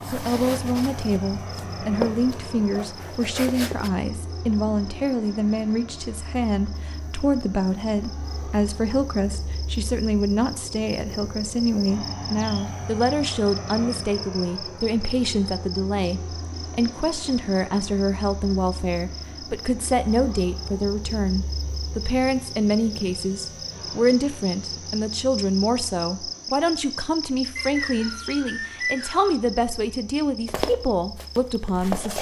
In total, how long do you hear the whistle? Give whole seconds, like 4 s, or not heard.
2 s.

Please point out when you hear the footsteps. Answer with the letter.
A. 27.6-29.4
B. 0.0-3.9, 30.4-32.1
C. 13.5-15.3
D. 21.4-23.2
B.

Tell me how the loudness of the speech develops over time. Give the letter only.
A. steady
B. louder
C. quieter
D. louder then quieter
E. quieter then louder
A.